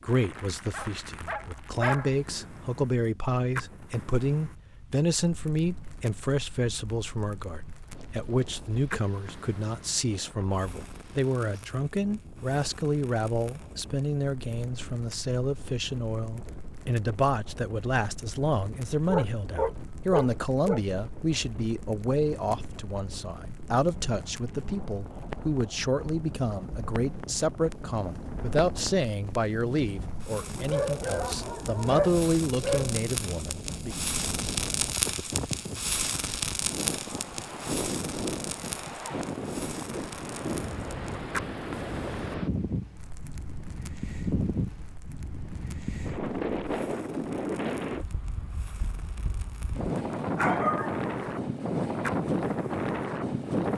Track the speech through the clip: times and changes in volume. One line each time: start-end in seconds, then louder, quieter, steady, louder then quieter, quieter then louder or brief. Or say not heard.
0.0-34.0 steady.